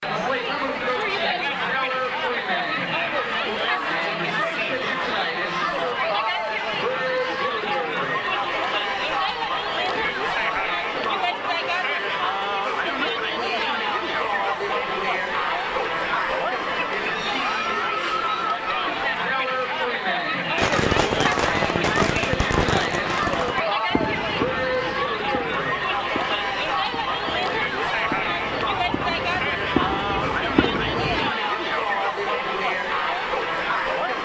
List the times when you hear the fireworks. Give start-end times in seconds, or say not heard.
20.6-31.3.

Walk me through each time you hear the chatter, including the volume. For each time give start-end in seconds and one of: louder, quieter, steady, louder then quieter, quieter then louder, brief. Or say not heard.
0.0-34.2 steady.